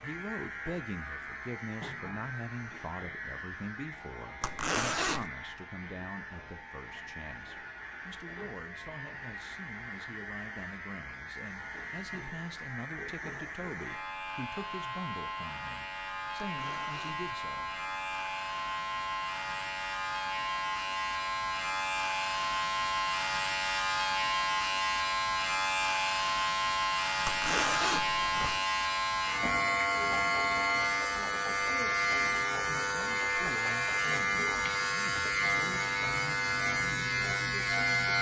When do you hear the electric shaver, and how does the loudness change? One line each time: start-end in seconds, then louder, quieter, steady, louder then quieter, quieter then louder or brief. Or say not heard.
0.0-38.1 louder.